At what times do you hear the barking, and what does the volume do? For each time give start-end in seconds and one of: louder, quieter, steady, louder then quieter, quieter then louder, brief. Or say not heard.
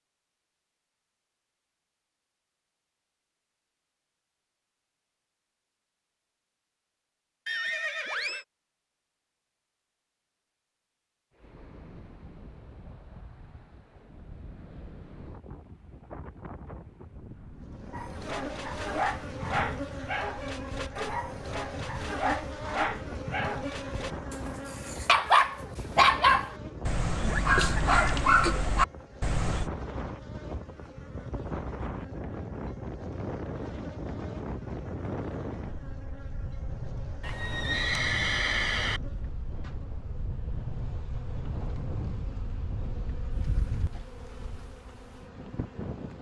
17.9-29.7 louder.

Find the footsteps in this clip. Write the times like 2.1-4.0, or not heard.
not heard.